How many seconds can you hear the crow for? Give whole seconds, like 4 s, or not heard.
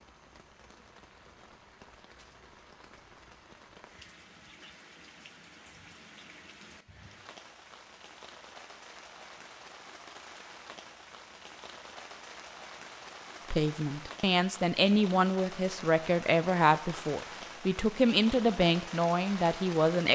not heard.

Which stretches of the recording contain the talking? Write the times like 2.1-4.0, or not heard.
13.5-20.1.